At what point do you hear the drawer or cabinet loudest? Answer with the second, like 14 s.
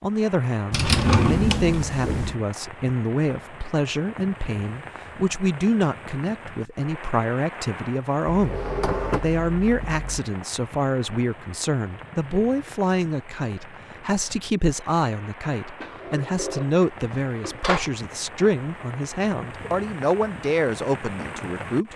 1 s.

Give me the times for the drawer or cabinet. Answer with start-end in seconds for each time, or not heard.
0.7-2.4, 8.2-10.2, 15.8-17.9.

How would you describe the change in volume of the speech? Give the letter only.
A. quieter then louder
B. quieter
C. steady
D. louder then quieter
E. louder
C.